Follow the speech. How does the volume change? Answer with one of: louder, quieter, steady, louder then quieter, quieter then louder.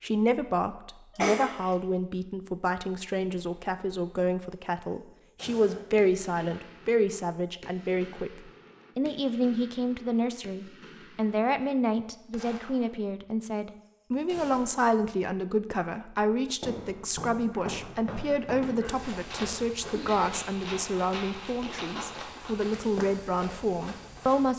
steady.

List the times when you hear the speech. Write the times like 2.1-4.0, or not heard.
0.0-24.5.